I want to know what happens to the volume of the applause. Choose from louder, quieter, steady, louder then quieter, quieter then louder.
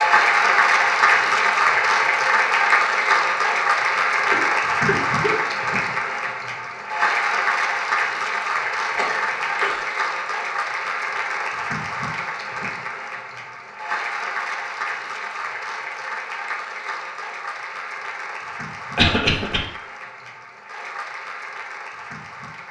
quieter.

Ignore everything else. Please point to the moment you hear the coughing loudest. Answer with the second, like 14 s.
19 s.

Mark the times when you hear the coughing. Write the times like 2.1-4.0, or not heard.
4.3-5.4, 8.9-9.8, 18.9-19.6.